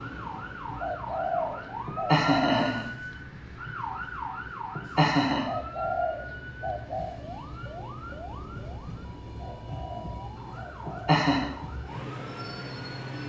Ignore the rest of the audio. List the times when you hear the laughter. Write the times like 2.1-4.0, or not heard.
1.9-2.9, 4.8-5.5, 10.8-11.5.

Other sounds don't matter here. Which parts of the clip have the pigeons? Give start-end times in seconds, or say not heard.
0.8-2.6, 5.5-7.2, 9.3-11.1.